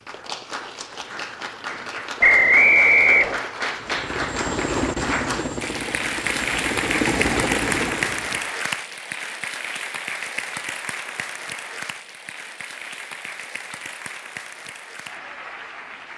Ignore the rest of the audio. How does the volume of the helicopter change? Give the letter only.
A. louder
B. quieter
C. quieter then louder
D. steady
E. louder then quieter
C.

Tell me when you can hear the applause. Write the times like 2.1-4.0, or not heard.
0.0-16.1.